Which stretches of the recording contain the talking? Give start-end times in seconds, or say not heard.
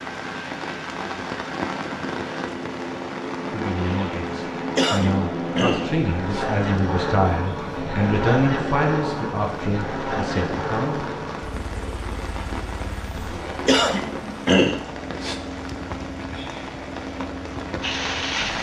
3.5-11.1.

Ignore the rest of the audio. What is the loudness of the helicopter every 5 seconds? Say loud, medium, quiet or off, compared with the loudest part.
medium, loud, medium, medium.